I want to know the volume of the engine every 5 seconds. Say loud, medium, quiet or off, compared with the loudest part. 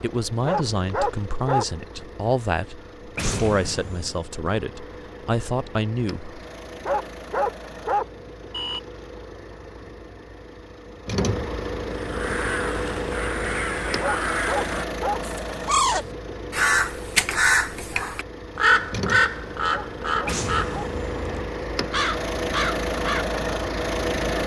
quiet, quiet, loud, medium, loud.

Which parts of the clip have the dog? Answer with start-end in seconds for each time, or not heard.
0.5-1.6, 6.8-8.8, 13.9-15.2, 19.6-20.9.